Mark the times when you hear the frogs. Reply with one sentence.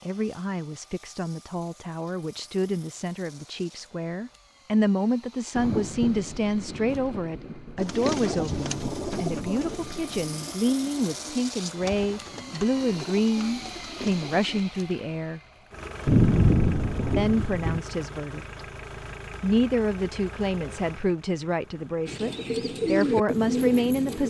The frogs can't be heard in this clip.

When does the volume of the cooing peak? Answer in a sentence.
The volume of the cooing peaks at 23 seconds.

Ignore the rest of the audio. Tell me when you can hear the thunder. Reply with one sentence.
You can hear the thunder from 5.5 to 10.3 s and from 16.1 to 17.8 s.